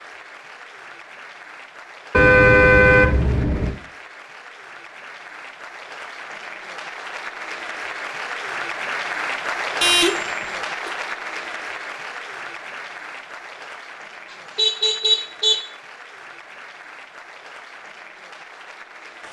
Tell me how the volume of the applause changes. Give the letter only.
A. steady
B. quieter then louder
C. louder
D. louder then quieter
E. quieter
D.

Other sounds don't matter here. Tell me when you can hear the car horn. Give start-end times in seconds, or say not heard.
2.1-3.8, 9.8-10.9, 14.6-15.6.